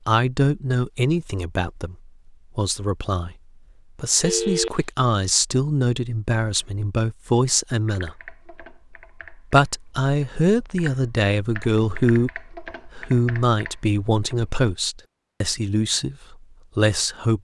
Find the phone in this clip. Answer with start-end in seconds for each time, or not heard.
4.2-4.8.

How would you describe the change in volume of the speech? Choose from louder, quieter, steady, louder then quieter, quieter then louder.
steady.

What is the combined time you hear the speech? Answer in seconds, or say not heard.
15 s.